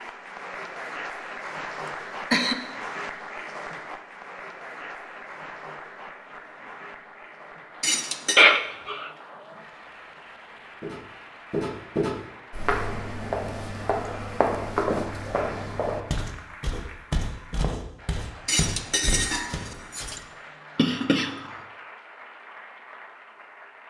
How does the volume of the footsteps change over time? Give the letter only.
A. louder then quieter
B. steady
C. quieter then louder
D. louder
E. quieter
E.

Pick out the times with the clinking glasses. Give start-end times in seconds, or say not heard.
7.8-8.4, 18.4-20.2.